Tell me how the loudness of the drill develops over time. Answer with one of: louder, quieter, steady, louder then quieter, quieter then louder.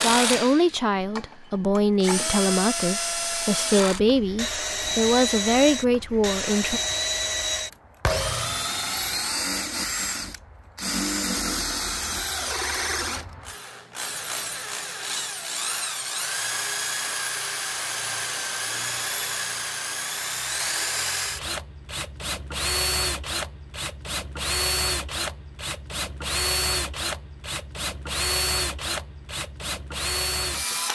steady.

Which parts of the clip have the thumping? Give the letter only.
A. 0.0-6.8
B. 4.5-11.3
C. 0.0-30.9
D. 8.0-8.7
D.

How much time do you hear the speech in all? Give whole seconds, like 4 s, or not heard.
7 s.